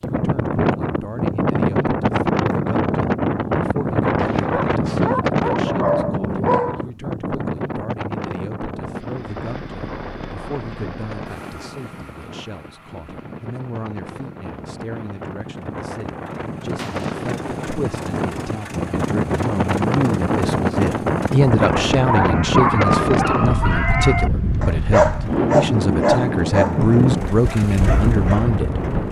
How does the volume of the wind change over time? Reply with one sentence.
The loudness of the wind goes down, then up.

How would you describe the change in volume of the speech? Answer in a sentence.
The loudness of the speech goes up.